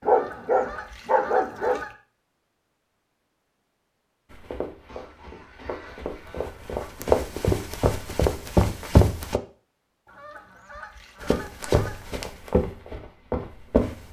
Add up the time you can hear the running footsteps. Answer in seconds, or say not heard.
8 s.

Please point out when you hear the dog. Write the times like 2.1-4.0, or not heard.
0.0-1.8.